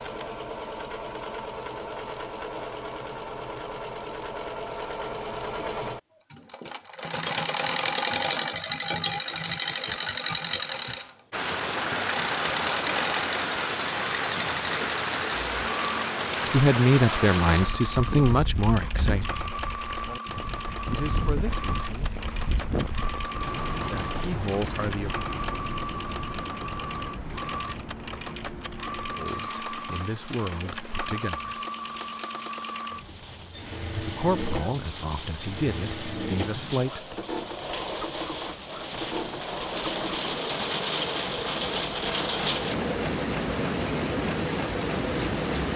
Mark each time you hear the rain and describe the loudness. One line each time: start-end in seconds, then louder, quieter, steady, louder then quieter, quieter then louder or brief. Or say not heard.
11.3-45.7 quieter then louder.